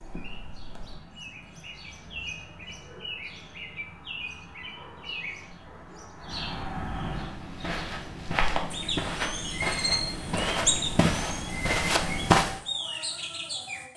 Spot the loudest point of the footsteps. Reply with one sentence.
The loudest moment of the footsteps is at 12 seconds.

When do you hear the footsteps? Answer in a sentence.
You can hear the footsteps from 7.2 to 12.6 s.